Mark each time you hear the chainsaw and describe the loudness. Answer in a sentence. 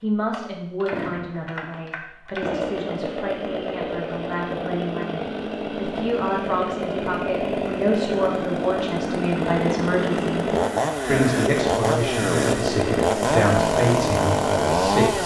The chainsaw can be heard from 0.3 to 15.2 s, getting louder.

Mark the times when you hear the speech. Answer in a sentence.
You can hear the speech from 0.0 to 10.4 s and from 11.1 to 15.2 s.